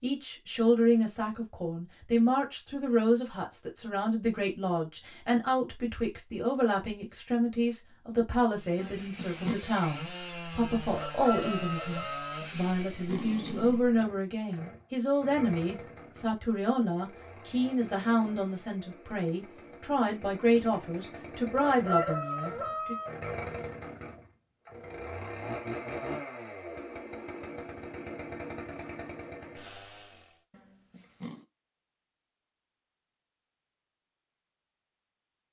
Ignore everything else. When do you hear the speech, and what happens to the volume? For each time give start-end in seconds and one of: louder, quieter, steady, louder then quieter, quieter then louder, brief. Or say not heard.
0.0-22.9 steady.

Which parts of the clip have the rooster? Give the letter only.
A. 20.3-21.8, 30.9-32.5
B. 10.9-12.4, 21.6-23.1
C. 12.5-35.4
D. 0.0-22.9
B.